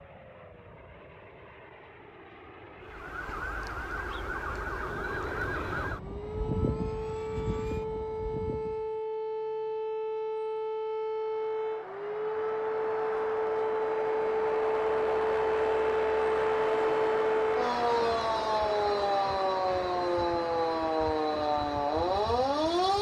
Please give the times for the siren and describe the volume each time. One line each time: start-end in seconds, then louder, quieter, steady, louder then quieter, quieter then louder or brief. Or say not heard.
2.8-22.9 louder.